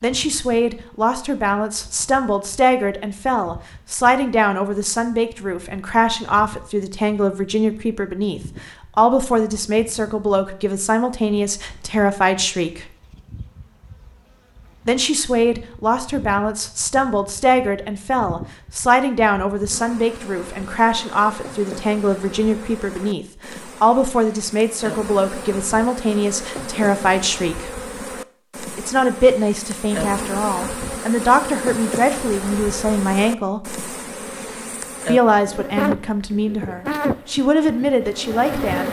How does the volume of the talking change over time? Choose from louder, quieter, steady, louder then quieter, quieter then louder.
steady.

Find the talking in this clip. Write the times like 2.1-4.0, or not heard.
0.0-12.8, 14.8-27.7, 28.8-33.6, 35.0-38.8.